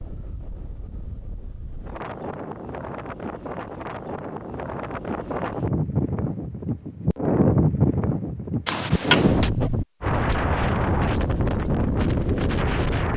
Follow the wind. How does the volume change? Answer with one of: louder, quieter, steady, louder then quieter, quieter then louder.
louder.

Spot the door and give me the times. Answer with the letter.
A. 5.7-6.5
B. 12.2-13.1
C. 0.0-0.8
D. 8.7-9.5
D.